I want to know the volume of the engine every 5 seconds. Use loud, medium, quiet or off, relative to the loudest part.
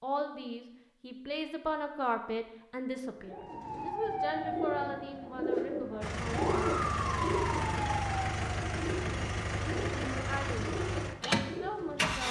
off, loud, loud.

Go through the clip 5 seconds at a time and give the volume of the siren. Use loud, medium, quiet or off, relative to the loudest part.
loud, loud, off.